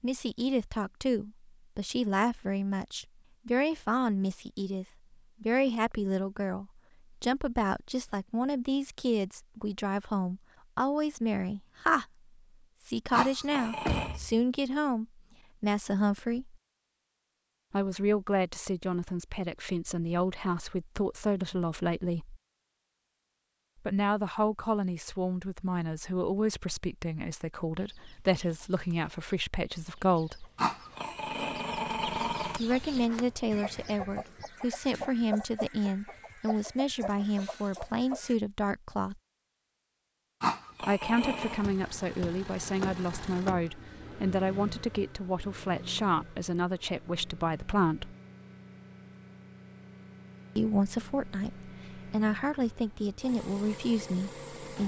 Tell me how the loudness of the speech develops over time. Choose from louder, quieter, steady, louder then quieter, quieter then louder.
steady.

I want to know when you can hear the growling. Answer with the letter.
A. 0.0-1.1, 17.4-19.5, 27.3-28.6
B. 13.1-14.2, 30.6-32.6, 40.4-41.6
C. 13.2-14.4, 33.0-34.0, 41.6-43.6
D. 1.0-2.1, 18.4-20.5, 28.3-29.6
B.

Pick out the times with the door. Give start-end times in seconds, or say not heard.
13.2-14.4, 33.0-34.0, 41.6-43.6.